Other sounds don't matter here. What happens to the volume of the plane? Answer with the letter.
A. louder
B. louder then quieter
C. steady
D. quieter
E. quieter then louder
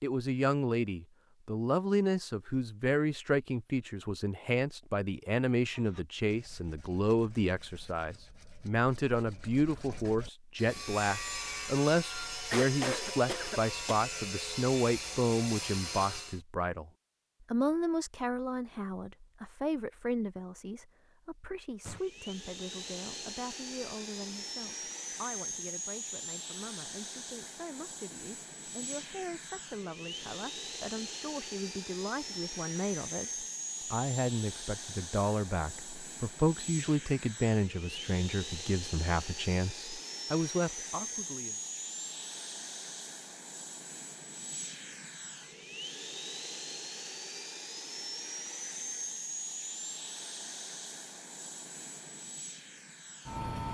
C.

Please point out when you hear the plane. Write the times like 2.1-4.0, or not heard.
21.8-53.7.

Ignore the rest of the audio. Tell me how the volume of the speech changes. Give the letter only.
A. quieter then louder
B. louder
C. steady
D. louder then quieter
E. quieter
A.